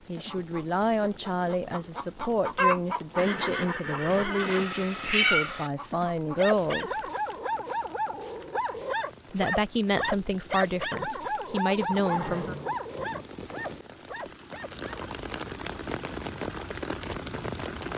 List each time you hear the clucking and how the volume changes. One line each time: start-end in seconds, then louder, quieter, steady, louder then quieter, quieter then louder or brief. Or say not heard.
0.1-6.5 louder then quieter.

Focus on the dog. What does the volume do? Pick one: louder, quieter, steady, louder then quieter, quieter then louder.
quieter.